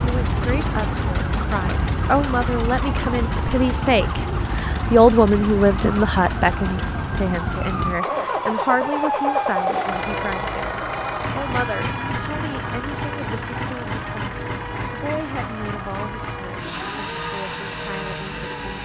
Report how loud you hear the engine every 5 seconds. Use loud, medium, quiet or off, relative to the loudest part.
loud, loud, loud, medium.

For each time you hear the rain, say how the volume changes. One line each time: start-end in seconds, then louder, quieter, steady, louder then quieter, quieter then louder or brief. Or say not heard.
not heard.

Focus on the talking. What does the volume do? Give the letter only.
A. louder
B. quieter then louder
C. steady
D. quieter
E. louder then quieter
E.